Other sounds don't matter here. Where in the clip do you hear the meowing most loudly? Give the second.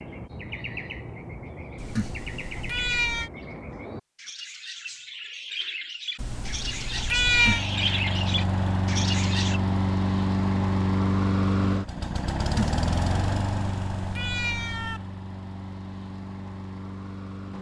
7 s.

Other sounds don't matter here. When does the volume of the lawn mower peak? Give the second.
11 s.